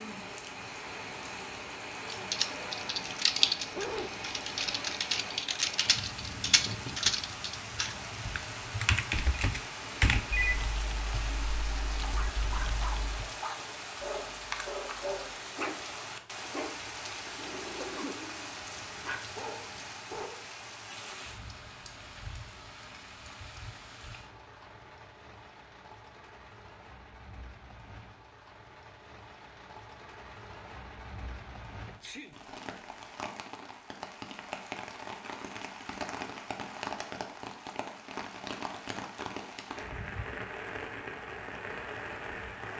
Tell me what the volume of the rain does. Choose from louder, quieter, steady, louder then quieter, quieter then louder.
quieter then louder.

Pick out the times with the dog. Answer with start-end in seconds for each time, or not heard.
12.0-20.4.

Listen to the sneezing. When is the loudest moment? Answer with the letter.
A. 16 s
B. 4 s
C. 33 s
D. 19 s
B.